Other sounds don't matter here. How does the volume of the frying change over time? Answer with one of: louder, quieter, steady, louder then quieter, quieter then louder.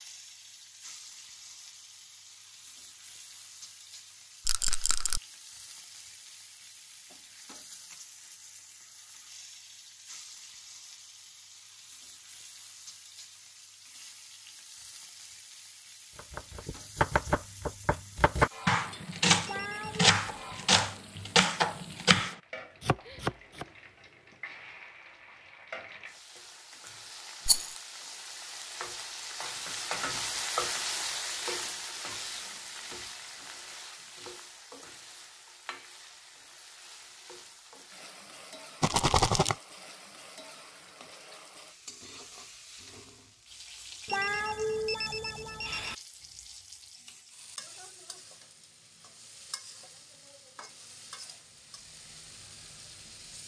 louder then quieter.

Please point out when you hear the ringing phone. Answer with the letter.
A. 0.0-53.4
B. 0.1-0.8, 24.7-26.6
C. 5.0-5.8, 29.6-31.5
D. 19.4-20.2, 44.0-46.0
D.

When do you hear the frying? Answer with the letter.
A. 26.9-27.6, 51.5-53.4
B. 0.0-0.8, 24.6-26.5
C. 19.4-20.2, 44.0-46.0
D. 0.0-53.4
D.